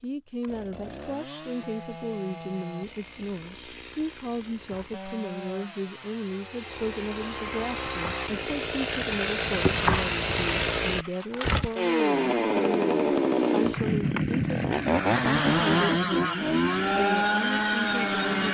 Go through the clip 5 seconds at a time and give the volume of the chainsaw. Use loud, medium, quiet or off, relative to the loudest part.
quiet, medium, loud, loud.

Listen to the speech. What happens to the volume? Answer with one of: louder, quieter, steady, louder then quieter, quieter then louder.
steady.